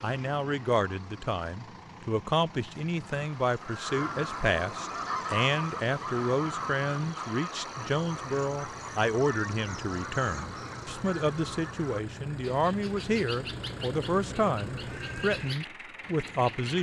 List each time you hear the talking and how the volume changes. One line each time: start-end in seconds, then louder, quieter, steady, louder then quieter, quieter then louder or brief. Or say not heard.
0.0-16.7 steady.